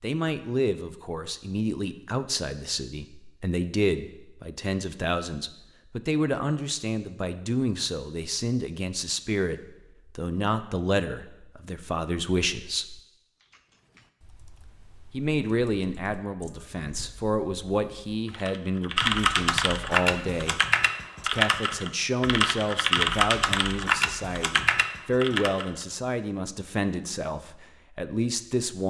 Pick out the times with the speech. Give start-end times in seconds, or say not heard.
0.0-13.0, 15.1-20.6, 21.2-28.8.